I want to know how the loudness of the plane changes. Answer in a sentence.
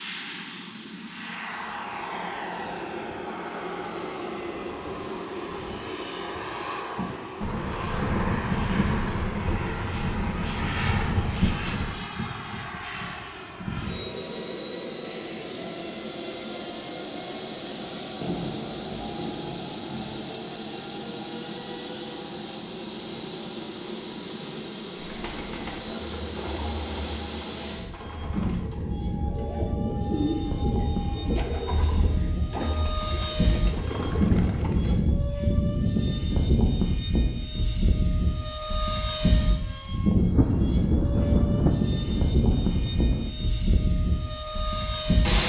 The loudness of the plane goes up.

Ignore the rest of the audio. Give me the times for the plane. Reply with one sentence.
The plane can be heard from 0.0 to 45.4 s.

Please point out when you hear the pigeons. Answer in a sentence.
The pigeons can be heard from 24.9 to 35.0 s.